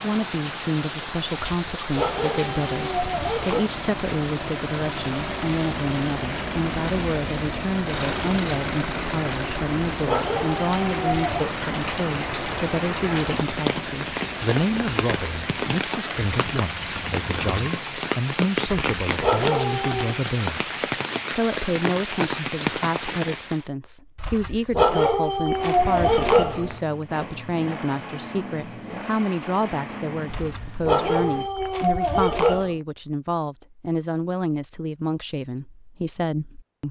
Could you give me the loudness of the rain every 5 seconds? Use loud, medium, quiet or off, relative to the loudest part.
loud, medium, loud, loud, loud, off, off, off.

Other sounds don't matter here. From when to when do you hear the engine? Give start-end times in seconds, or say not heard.
1.9-17.6, 25.5-31.5.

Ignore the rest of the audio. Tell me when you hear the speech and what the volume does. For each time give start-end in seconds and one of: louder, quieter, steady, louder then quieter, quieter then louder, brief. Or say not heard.
0.0-36.8 steady.